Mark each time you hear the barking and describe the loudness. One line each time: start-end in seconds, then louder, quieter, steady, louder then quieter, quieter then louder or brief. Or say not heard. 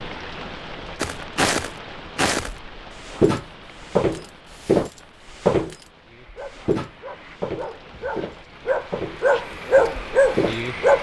6.0-10.9 louder.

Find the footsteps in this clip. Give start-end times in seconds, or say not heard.
1.0-5.8, 6.5-10.6.